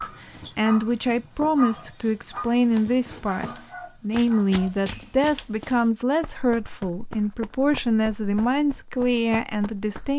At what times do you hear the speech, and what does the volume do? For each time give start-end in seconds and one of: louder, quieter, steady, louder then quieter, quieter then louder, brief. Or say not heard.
0.0-10.1 steady.